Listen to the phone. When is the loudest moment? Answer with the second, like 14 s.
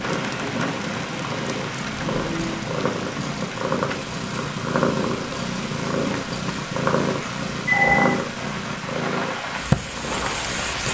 8 s.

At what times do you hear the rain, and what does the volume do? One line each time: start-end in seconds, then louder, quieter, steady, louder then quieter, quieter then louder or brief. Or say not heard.
0.0-10.8 quieter then louder.